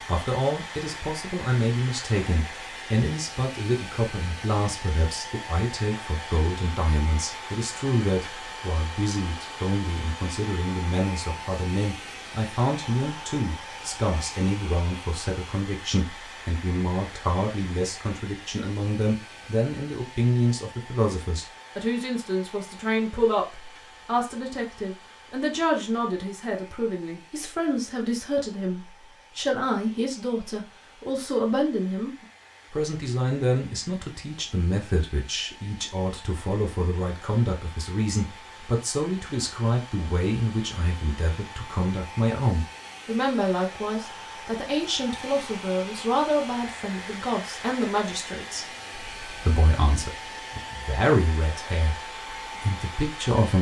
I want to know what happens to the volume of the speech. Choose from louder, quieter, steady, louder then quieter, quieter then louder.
steady.